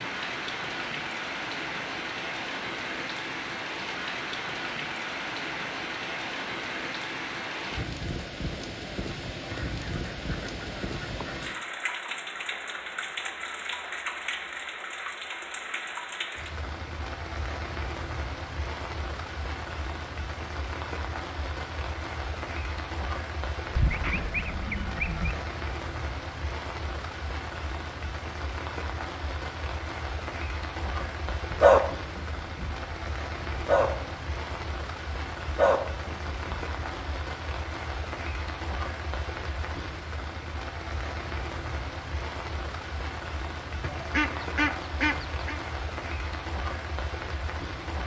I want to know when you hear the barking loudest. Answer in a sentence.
The volume of the barking peaks at 32 seconds.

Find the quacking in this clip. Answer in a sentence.
You can hear the quacking from 9.5 to 11.5 s, from 23.8 to 25.4 s and from 43.8 to 45.6 s.